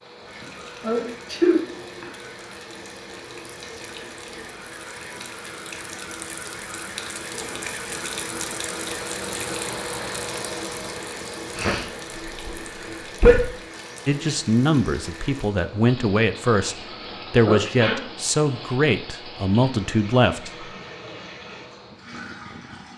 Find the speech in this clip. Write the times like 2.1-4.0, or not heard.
14.1-20.6.